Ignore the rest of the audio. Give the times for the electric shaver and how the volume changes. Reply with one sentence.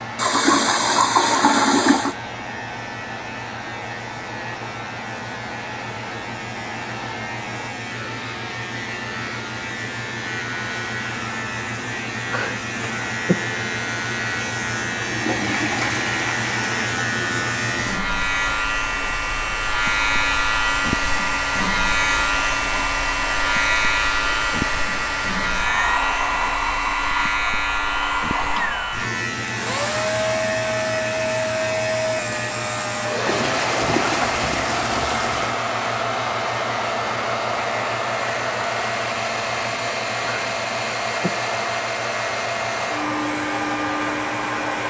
You can hear the electric shaver from 0.0 to 44.8 s, getting louder then quieter.